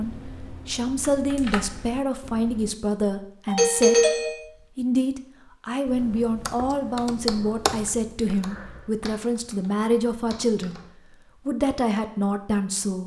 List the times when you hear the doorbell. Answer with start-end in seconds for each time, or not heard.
3.5-4.4.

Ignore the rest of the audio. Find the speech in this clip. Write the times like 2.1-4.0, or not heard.
0.0-4.0, 4.8-10.8, 11.4-13.0.